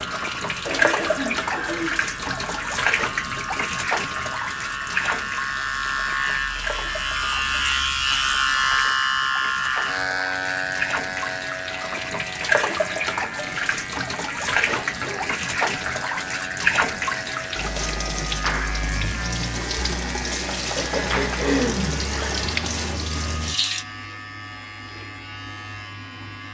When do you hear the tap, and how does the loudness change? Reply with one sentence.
You can hear the tap from 0.0 to 23.9 s, getting quieter then louder.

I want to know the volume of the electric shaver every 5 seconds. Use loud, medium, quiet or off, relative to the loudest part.
medium, loud, medium, medium, quiet, quiet.